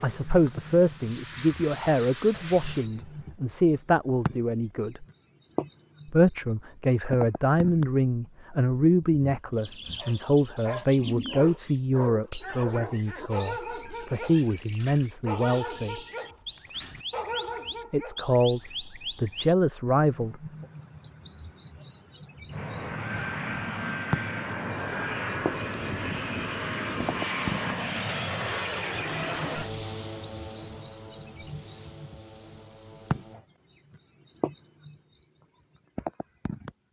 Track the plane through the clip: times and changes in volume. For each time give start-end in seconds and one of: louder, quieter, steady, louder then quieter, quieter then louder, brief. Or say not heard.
0.0-2.9 brief
22.5-33.5 quieter.